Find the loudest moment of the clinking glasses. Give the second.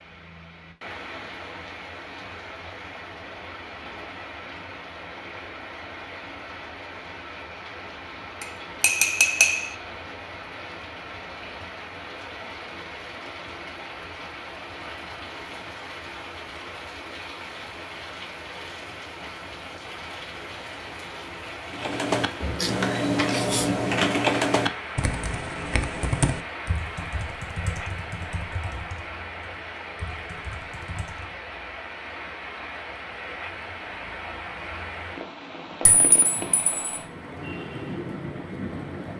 9 s.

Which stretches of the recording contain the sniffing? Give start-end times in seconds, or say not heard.
22.4-23.9.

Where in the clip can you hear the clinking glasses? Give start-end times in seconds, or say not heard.
8.4-9.8, 35.9-36.8.